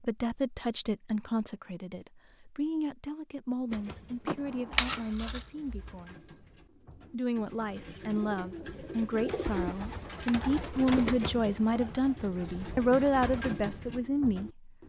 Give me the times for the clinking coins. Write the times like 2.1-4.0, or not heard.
4.7-5.9.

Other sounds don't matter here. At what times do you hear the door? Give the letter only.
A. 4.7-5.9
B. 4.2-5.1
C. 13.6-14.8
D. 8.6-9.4
B.